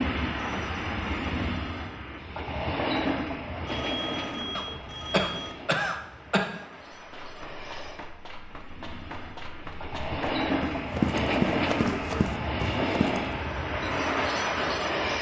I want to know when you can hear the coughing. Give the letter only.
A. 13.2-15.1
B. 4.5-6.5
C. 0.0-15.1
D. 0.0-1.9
B.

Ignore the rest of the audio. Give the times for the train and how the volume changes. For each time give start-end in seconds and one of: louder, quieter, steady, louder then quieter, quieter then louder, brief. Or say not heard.
0.0-15.1 quieter then louder.